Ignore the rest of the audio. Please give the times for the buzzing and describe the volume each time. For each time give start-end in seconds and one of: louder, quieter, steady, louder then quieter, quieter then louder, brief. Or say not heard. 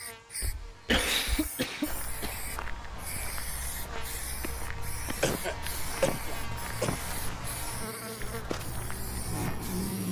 0.0-10.0 louder.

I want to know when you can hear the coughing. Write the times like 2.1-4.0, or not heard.
0.8-2.5, 5.2-7.2.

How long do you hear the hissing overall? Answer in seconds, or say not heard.
10 s.